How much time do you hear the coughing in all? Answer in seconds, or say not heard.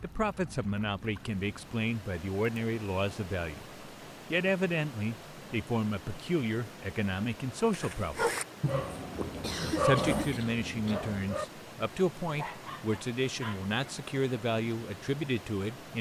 2 s.